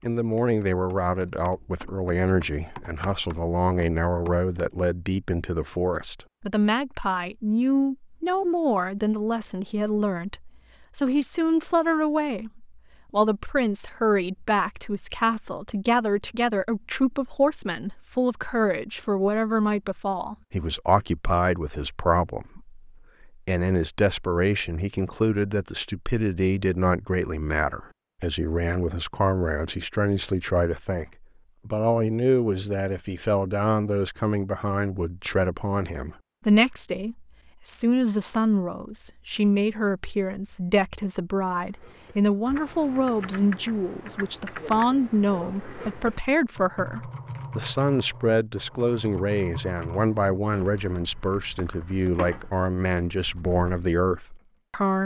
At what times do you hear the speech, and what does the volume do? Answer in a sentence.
The speech can be heard from 0.0 to 55.0 s, at a steady volume.